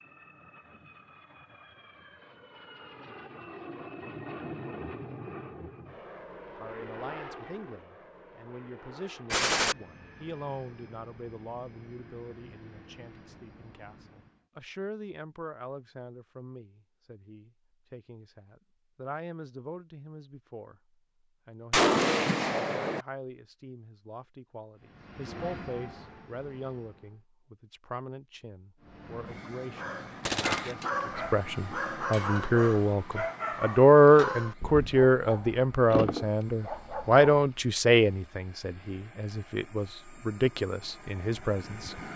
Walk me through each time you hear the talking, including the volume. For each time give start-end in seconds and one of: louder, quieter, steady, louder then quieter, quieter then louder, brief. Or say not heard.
6.5-20.8 steady
21.4-41.9 louder then quieter.